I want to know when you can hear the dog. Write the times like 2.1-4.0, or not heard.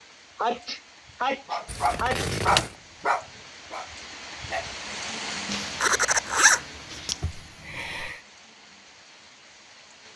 1.4-4.7.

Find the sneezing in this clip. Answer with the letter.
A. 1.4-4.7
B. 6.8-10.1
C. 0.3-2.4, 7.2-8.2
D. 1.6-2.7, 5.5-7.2
C.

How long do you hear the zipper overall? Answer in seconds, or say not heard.
3 s.